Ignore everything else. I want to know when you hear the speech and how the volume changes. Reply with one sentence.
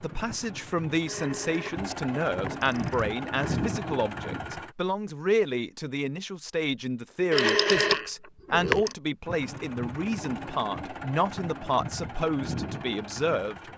You can hear the speech from 0.0 to 13.6 s, at a steady volume.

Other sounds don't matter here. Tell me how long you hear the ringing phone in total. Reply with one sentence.
The ringing phone can be heard for 4 seconds in total.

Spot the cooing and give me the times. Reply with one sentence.
The cooing can't be heard in this clip.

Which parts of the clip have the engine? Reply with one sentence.
The engine can be heard from 0.0 to 4.8 s and from 9.2 to 13.7 s.